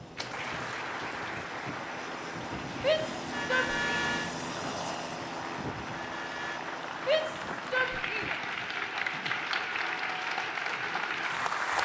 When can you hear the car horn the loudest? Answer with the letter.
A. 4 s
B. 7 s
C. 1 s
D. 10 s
A.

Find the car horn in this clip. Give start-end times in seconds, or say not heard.
3.3-4.3, 5.9-6.6.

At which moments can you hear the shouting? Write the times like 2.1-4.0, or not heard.
2.8-3.8, 7.0-8.3.